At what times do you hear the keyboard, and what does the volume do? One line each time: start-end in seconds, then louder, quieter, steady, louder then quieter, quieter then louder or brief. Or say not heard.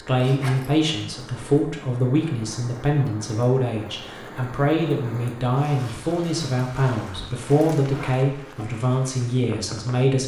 not heard.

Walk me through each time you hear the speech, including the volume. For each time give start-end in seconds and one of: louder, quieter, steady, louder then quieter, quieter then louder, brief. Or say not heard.
0.0-10.2 steady.